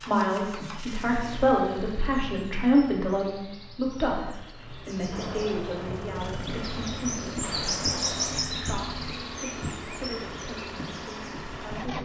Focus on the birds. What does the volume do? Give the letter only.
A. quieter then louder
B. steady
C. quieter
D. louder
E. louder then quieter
E.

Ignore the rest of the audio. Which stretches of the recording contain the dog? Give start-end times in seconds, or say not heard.
not heard.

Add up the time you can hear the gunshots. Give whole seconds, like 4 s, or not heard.
3 s.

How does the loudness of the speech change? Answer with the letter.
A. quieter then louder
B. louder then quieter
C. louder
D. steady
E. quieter
E.